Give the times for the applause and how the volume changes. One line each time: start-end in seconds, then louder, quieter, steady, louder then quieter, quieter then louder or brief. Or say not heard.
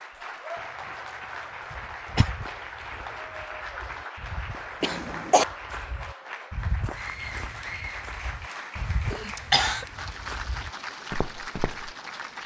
0.0-12.4 steady.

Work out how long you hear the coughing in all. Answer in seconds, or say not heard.
2 s.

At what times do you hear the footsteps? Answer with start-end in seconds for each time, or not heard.
1.9-11.9.